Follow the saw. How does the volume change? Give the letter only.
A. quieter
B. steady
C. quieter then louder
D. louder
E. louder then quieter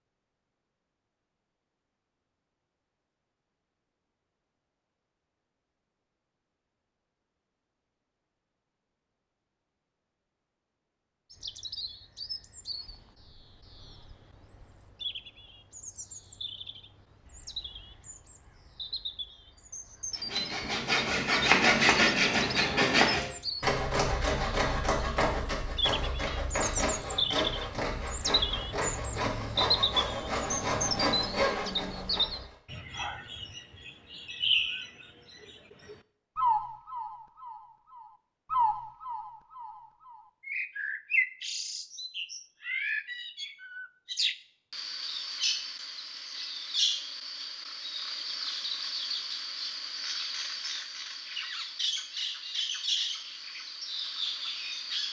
A.